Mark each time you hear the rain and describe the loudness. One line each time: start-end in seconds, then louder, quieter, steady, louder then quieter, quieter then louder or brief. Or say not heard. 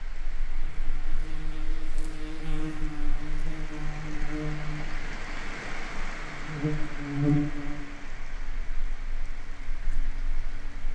0.0-10.8 louder then quieter.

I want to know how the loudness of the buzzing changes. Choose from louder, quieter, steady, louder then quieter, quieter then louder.
louder then quieter.